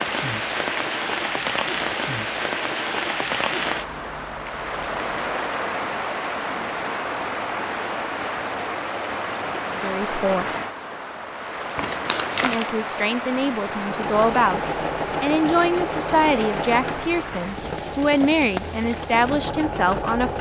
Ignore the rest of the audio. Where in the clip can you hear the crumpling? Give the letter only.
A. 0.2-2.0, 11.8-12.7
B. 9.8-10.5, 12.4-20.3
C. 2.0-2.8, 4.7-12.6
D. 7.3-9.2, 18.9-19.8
A.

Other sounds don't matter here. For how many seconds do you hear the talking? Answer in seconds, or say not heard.
9 s.